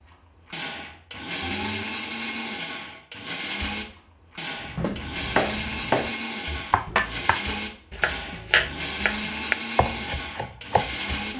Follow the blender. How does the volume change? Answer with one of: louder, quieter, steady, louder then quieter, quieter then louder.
steady.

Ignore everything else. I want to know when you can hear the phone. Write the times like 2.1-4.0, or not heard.
1.4-1.9.